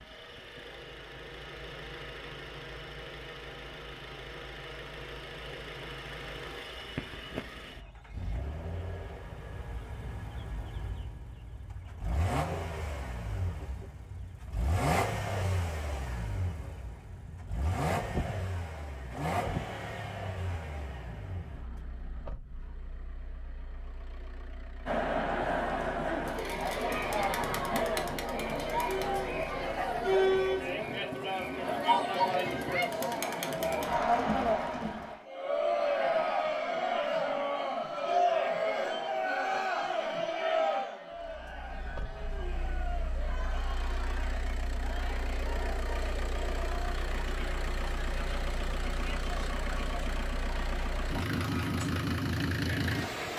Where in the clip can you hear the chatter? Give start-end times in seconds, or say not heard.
24.9-53.1.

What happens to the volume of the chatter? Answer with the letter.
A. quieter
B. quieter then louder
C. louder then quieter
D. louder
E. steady
A.